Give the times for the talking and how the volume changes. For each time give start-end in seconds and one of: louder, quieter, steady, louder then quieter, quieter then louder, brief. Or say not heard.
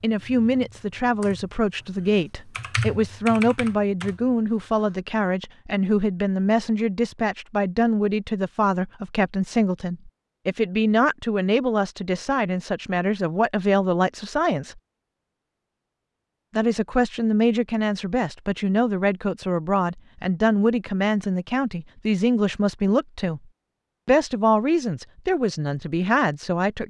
0.0-14.8 steady
16.6-23.4 steady
24.1-26.8 brief.